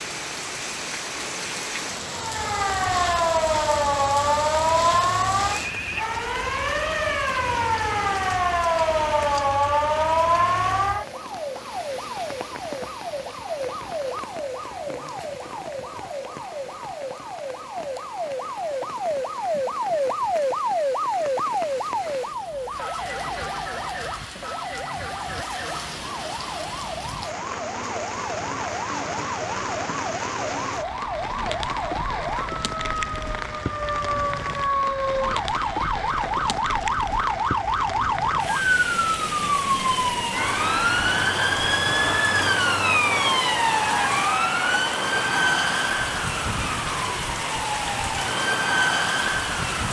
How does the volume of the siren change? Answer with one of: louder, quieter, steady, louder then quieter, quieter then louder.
quieter then louder.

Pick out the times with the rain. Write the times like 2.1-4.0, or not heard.
0.0-49.8.